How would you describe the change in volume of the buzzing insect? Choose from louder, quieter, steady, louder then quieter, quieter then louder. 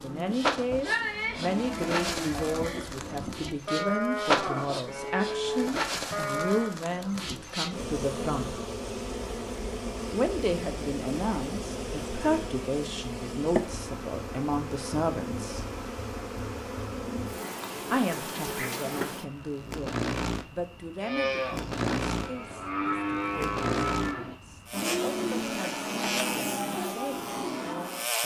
steady.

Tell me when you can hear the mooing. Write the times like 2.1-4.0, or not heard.
0.0-6.8, 21.0-28.1.